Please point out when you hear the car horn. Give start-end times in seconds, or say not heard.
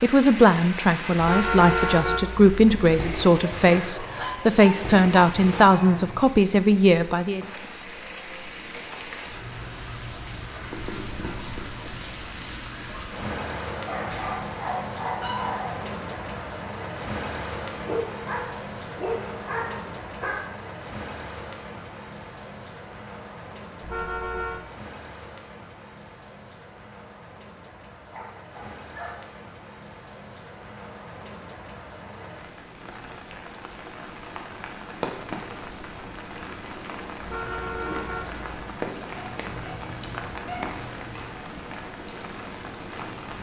1.1-3.0, 23.8-24.6, 37.2-38.5.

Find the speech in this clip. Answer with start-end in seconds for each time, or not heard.
0.0-7.5.